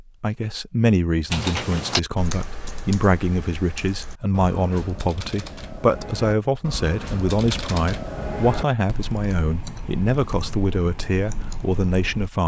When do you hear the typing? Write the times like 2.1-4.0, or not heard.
1.3-12.3.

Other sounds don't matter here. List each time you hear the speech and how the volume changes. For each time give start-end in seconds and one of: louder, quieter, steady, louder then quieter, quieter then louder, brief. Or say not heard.
0.0-12.4 steady.